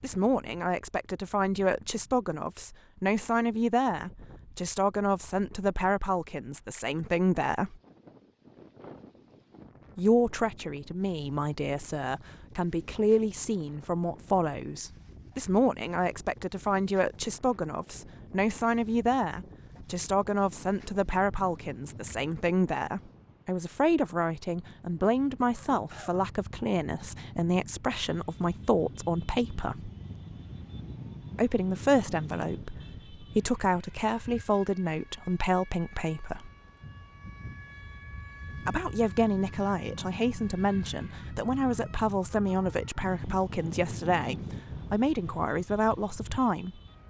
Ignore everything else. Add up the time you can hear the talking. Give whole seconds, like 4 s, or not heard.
41 s.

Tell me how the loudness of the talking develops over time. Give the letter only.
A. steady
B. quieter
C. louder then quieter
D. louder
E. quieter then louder
A.